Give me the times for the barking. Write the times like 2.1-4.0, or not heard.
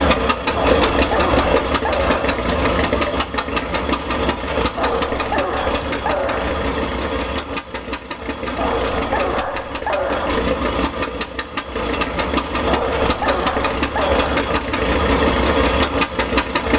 0.6-2.5, 4.8-6.7, 8.6-10.4, 12.7-14.4.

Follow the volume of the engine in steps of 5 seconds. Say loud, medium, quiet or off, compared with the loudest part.
loud, medium, loud, loud.